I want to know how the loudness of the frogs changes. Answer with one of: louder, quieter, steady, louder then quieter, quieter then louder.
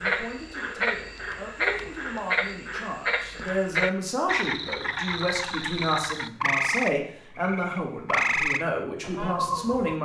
steady.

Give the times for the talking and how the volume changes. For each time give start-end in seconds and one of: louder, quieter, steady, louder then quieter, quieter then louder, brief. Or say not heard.
0.0-10.0 louder.